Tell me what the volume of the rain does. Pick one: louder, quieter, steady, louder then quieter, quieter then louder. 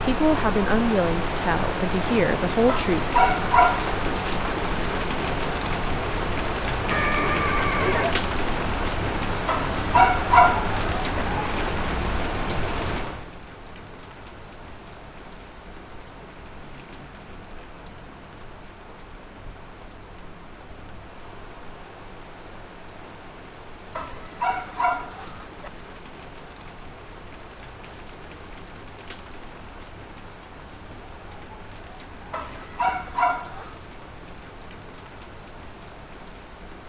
quieter.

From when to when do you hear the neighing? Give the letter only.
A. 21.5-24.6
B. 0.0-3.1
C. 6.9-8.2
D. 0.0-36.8
C.